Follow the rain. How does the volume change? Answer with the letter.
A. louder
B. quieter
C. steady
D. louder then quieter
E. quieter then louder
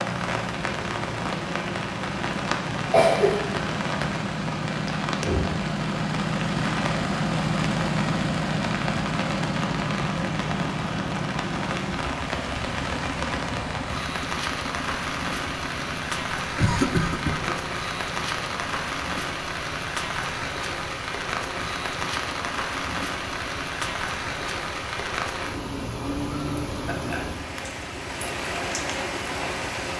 C.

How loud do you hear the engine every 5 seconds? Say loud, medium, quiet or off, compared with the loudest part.
medium, loud, medium, quiet, quiet, quiet.